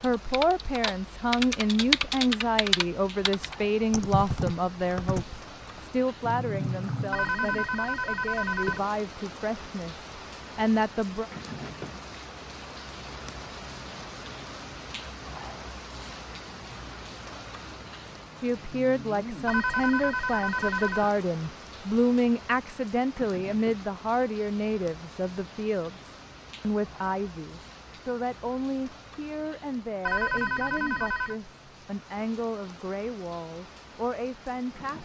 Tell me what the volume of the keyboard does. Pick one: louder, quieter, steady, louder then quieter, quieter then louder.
louder then quieter.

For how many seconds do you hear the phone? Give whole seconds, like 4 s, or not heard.
5 s.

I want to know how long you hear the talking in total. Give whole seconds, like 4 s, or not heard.
28 s.